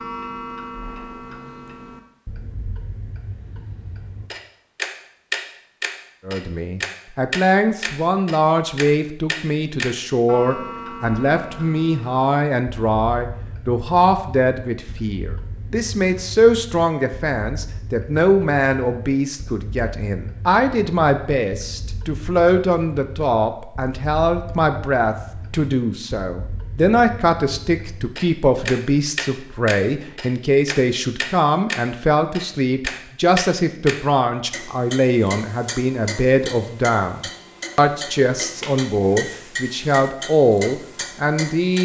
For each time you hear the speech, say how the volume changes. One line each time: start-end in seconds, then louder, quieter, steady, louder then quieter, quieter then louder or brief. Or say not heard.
6.2-41.7 steady.